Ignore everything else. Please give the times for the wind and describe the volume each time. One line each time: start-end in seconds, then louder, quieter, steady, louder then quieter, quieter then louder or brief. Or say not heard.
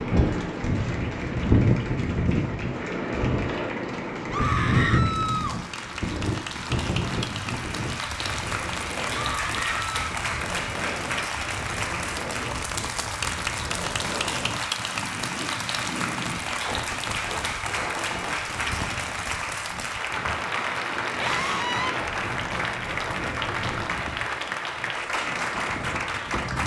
0.0-26.6 quieter.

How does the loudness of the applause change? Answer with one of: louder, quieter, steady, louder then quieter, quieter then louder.
louder.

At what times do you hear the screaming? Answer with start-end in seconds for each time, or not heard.
4.3-5.5, 9.2-9.9, 21.2-21.9.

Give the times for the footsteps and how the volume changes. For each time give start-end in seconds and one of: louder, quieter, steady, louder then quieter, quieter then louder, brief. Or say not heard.
not heard.